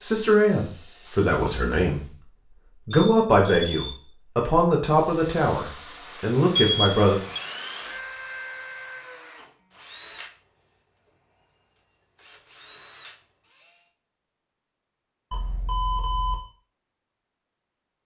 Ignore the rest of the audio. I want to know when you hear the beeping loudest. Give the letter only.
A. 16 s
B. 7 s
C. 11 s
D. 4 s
B.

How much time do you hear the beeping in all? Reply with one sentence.
The beeping can be heard for 3 seconds in total.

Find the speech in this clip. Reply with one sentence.
The speech can be heard from 0.0 to 7.2 s.